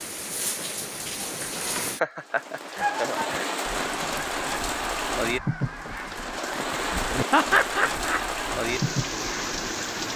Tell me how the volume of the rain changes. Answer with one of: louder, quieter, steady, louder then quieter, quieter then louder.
steady.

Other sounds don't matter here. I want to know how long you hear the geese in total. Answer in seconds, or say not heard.
7 s.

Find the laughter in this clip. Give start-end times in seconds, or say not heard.
1.9-3.5, 7.3-8.2.